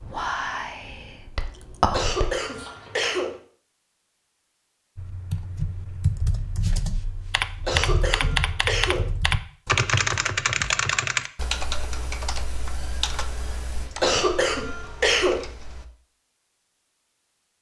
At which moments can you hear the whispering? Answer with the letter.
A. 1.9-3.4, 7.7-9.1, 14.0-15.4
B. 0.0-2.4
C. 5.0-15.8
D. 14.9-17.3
B.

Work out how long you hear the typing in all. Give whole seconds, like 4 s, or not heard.
11 s.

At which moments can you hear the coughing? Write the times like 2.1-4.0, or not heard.
1.9-3.4, 7.7-9.1, 14.0-15.4.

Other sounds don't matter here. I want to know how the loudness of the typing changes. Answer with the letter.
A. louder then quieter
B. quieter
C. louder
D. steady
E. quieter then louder
A.